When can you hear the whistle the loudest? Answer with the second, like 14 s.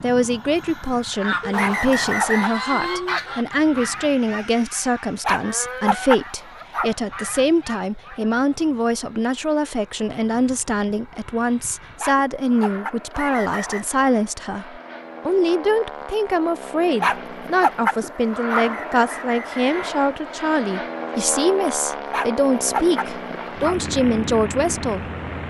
2 s.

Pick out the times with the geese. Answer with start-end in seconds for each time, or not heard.
1.1-8.3.